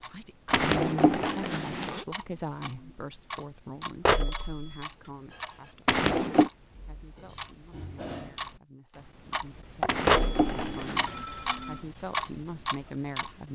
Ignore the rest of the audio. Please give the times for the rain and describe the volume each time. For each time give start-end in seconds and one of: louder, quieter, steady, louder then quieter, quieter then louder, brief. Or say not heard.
not heard.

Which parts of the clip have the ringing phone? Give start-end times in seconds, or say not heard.
4.0-5.1, 10.1-11.8.